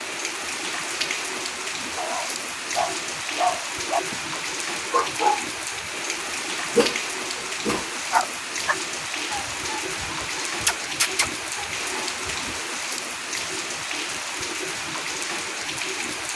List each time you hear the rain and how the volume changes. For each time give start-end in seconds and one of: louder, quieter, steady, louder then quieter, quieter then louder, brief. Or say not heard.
0.0-16.3 steady.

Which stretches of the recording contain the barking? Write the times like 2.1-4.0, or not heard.
1.9-4.2, 4.8-5.5, 6.8-12.6.